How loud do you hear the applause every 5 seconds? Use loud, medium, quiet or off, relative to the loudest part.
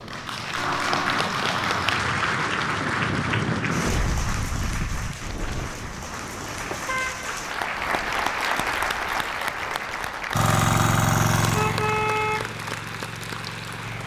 loud, loud, medium.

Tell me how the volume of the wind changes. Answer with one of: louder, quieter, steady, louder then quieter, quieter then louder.
louder then quieter.